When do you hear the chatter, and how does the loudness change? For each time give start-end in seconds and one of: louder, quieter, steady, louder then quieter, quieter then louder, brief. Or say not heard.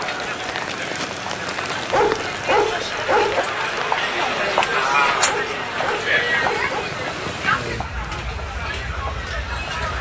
0.0-9.9 louder then quieter.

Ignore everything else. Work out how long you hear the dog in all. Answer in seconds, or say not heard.
3 s.